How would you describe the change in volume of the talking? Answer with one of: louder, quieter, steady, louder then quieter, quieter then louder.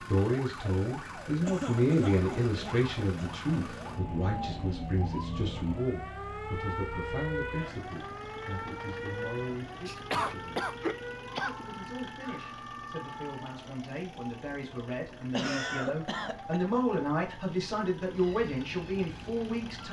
quieter then louder.